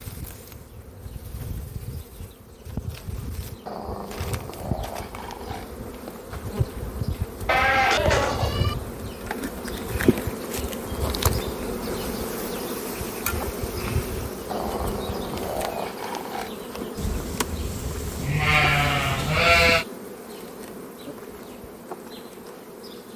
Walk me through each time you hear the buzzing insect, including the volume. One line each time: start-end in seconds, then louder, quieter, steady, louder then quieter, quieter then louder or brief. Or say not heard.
0.0-23.1 louder then quieter.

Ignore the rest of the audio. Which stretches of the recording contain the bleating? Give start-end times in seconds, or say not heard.
7.5-8.8, 16.9-19.9.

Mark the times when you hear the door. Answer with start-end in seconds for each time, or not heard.
not heard.